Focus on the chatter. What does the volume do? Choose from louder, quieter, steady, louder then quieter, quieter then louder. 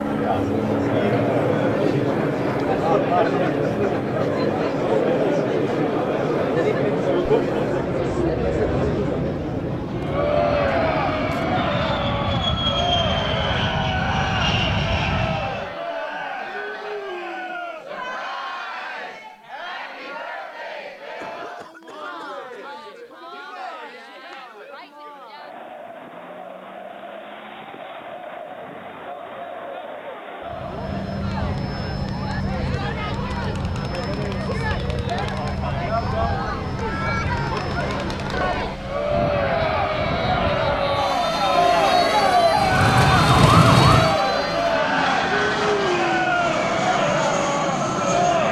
quieter then louder.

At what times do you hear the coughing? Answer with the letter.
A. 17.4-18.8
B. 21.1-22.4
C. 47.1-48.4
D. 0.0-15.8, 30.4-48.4
B.